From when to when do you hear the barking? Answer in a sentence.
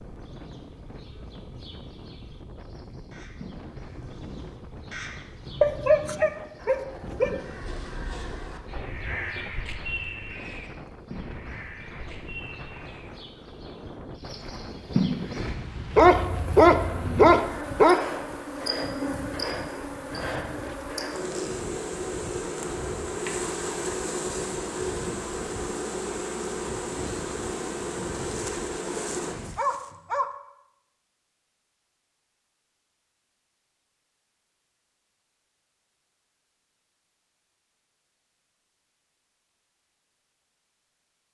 The barking can be heard from 5.6 to 7.3 s, from 15.9 to 18.0 s and from 28.2 to 30.2 s.